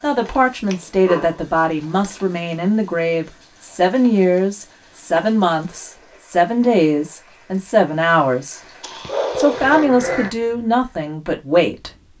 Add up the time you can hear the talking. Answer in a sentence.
The talking can be heard for 11 seconds in total.